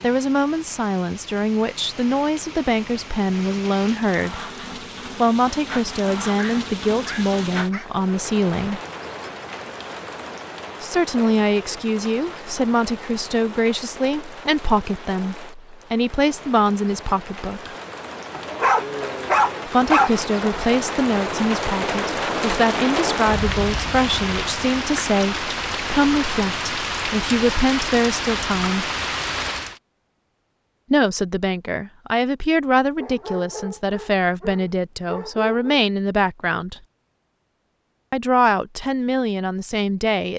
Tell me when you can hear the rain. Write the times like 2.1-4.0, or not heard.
0.0-29.8.